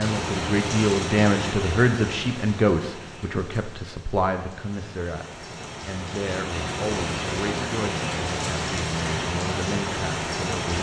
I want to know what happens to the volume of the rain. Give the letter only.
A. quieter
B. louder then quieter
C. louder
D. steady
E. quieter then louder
E.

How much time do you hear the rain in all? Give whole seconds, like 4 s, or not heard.
11 s.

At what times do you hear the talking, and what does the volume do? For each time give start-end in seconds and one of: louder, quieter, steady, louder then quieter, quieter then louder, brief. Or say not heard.
0.0-10.7 quieter.